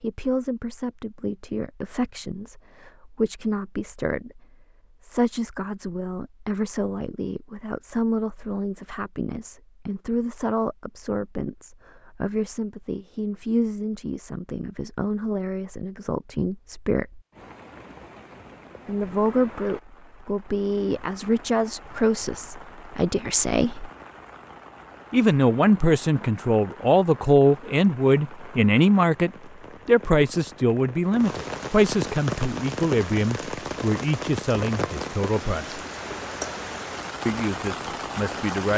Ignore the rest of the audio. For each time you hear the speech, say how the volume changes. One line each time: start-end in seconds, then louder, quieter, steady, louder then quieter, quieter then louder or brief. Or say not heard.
0.0-17.2 steady
18.9-23.9 steady
25.1-35.8 quieter
37.2-38.7 brief.